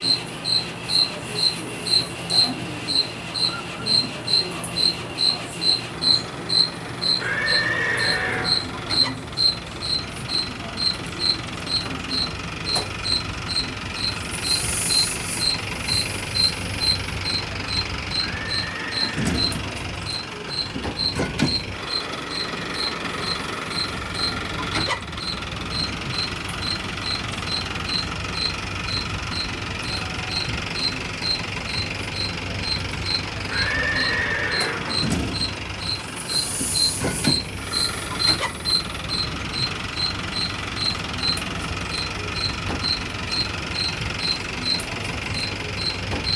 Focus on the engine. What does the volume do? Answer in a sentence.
The volume of the engine goes up.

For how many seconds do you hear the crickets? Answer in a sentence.
The crickets can be heard for 46 seconds in total.